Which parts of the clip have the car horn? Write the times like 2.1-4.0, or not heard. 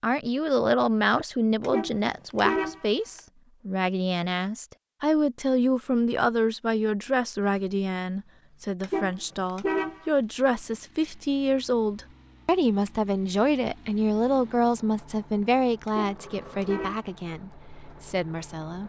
1.6-3.2, 8.8-10.1, 15.8-17.1.